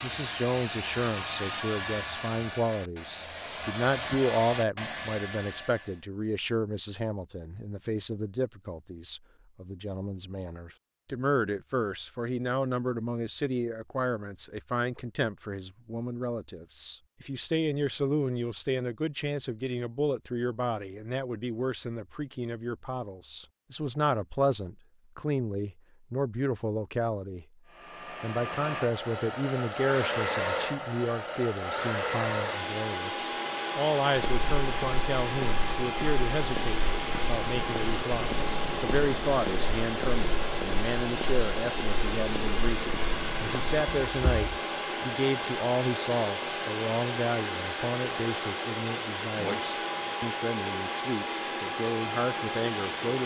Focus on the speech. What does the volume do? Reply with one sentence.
The loudness of the speech stays about the same.